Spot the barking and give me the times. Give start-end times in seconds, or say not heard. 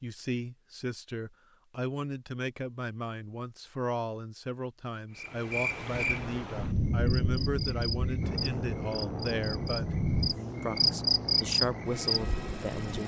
not heard.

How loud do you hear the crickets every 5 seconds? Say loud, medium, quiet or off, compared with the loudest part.
off, medium, loud.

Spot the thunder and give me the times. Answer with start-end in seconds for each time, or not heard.
5.9-10.3.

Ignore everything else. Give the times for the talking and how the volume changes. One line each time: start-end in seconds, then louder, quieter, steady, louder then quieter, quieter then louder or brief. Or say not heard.
0.0-10.0 steady
10.6-13.0 brief.